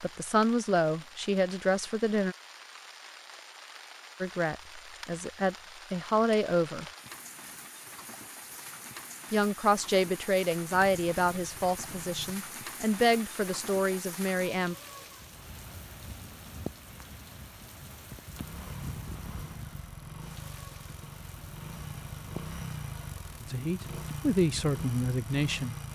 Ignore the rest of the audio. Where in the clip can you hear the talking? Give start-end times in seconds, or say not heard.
0.0-2.4, 4.2-6.8, 9.3-14.8, 23.4-25.8.